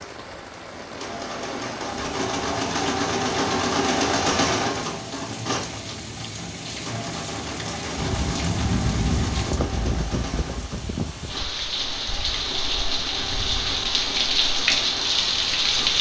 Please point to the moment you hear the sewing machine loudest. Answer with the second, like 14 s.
4 s.